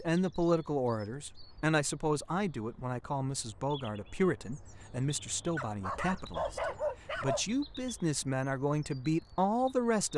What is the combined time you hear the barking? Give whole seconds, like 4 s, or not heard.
2 s.